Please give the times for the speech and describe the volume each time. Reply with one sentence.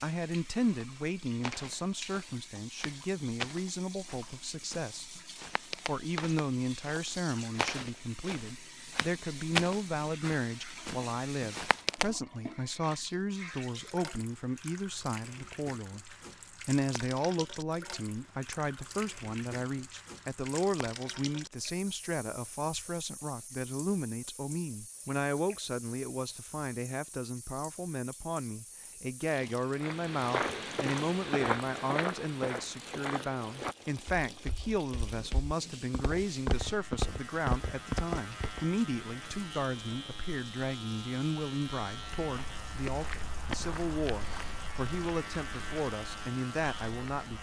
You can hear the speech from 0.0 to 47.3 s, at a steady volume.